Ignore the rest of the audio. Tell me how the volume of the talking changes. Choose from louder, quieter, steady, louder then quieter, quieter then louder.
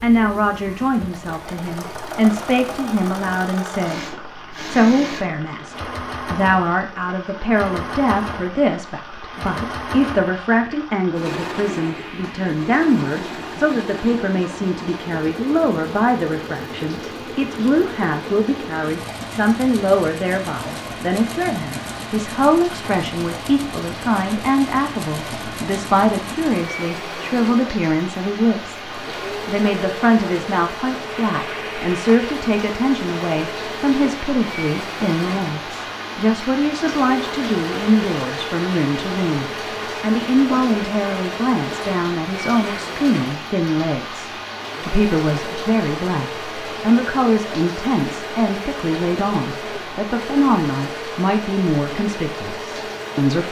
steady.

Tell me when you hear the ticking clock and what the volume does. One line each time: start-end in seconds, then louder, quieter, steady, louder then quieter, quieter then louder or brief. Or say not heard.
not heard.